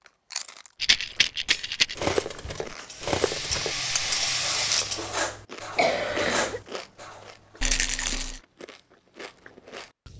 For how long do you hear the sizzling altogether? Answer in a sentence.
You can hear the sizzling for 2 seconds altogether.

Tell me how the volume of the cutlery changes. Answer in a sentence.
The loudness of the cutlery goes down, then up.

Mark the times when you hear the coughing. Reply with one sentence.
You can hear the coughing from 5.8 to 6.6 s.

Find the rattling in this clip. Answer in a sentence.
You can hear the rattling from 0.8 to 1.9 s and from 7.6 to 8.4 s.